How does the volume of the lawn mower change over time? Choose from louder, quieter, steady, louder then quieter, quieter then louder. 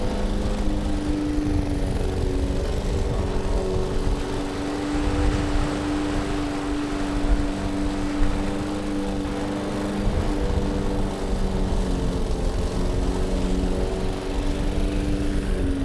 steady.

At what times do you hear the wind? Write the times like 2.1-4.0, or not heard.
0.0-15.8.